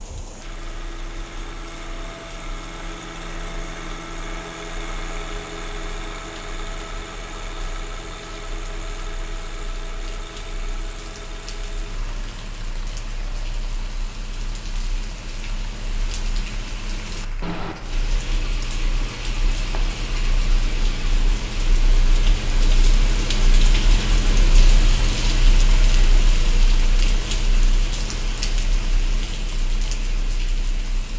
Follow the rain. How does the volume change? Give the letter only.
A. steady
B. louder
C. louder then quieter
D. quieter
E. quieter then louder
B.